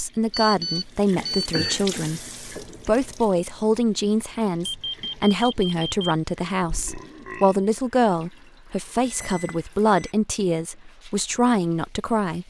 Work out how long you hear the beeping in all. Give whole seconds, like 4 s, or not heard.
4 s.